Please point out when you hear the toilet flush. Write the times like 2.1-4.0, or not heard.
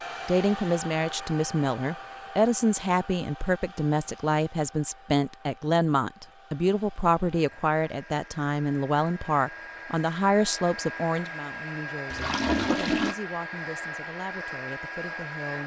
12.1-13.2.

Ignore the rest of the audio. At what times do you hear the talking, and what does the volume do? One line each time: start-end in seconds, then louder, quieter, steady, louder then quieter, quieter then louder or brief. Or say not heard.
0.2-15.6 quieter.